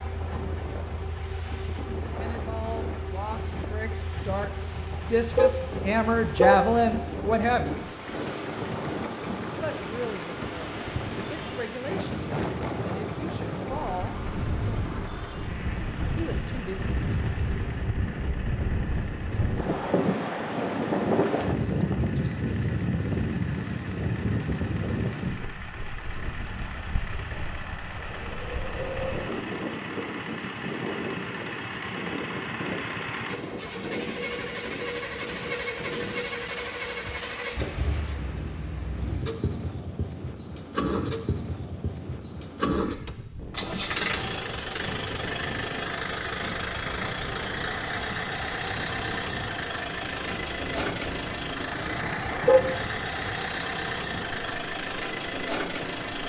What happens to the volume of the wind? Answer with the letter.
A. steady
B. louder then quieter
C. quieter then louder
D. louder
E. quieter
B.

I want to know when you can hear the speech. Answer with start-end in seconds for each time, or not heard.
2.2-7.8, 9.6-14.2, 16.1-16.8.